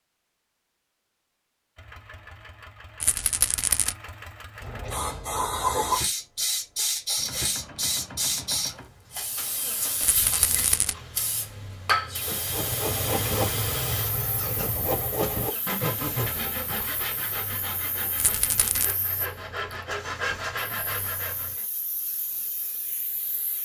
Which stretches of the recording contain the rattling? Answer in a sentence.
The rattling can be heard from 3.0 to 4.0 s, from 10.0 to 10.9 s and from 18.1 to 18.9 s.